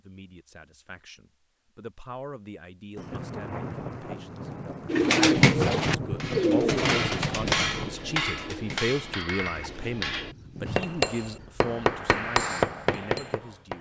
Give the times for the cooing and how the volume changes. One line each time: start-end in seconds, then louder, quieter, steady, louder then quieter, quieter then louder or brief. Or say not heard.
4.8-11.5 quieter then louder.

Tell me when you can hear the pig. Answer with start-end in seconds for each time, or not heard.
not heard.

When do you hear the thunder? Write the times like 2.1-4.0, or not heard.
3.0-8.0.